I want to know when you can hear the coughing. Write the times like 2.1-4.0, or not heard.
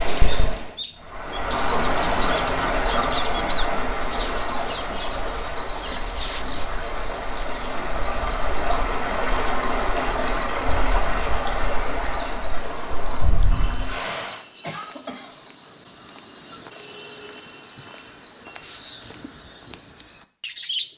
14.6-15.3.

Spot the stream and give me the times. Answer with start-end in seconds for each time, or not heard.
0.0-14.4.